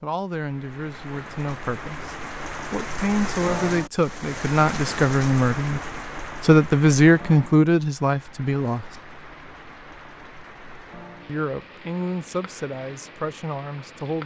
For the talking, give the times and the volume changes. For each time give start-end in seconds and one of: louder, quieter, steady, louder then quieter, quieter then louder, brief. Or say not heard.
0.0-8.9 louder
11.2-14.2 brief.